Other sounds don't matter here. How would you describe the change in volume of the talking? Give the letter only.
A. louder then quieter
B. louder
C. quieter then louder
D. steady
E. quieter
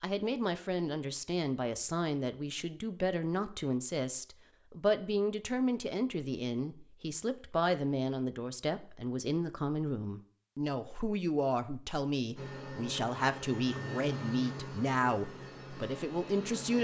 D.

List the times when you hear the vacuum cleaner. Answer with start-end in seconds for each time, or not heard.
12.3-16.7.